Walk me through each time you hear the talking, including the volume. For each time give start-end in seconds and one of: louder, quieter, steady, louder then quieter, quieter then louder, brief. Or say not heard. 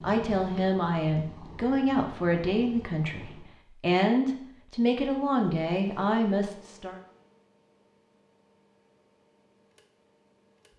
0.0-7.0 steady.